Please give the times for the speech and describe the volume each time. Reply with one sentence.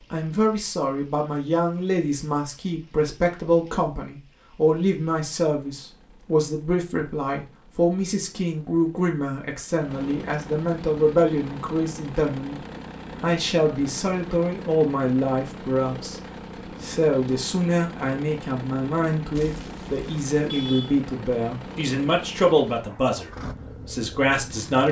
The speech can be heard from 0.1 to 16.2 s, at a steady volume; and from 16.8 to 24.8 s, at a steady volume.